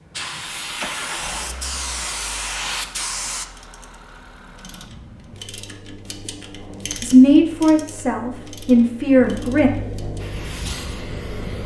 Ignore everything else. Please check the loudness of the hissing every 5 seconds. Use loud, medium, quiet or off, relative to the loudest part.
loud, off, medium.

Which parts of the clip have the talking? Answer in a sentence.
You can hear the talking from 7.0 to 9.7 s.